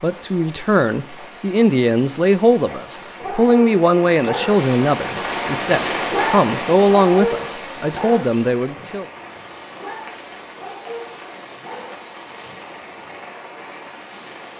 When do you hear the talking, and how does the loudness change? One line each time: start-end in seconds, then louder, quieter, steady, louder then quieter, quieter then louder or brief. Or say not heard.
0.0-9.1 steady.